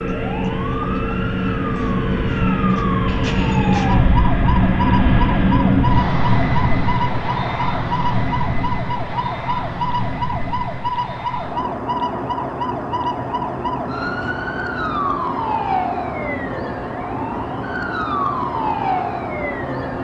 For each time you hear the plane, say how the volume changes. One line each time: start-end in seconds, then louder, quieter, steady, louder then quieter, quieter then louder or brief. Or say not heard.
0.0-19.9 quieter.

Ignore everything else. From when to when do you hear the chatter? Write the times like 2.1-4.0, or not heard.
not heard.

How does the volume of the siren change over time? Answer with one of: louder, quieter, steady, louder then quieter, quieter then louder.
steady.